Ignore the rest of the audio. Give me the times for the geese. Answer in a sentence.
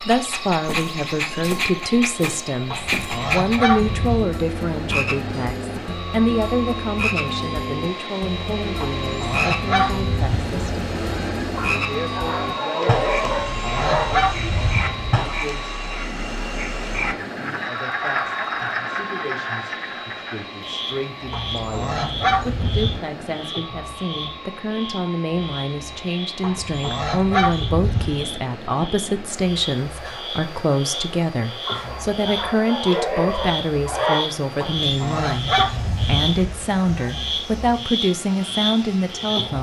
The geese can be heard from 2.7 to 4.2 s, from 9.0 to 11.5 s, from 13.2 to 15.2 s, from 21.3 to 23.0 s, from 26.4 to 28.3 s and from 34.6 to 37.2 s.